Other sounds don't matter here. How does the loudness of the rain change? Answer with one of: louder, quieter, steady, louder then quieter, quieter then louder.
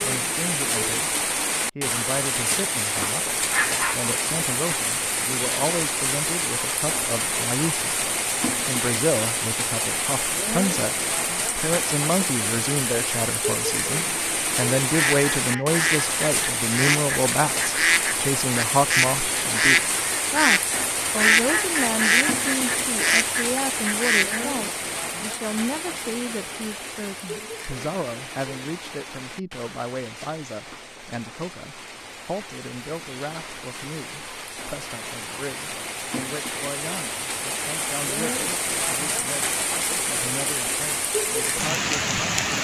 quieter then louder.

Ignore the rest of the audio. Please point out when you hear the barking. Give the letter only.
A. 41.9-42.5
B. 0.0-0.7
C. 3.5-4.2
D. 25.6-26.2
C.